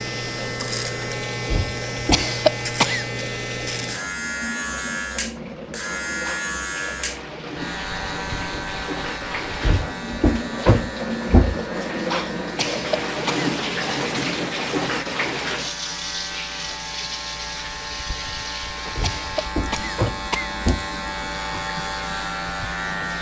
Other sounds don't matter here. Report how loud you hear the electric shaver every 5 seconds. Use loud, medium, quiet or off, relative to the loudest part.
loud, loud, medium, medium, loud.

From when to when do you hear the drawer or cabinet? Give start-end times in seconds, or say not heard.
1.4-2.3, 9.6-11.6, 18.9-20.9.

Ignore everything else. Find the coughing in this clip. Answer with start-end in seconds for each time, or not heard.
2.1-3.0, 12.6-13.5, 19.0-20.5.